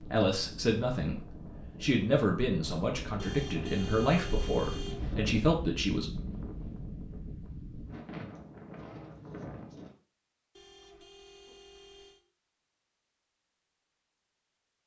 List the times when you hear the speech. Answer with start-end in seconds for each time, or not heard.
0.0-6.0.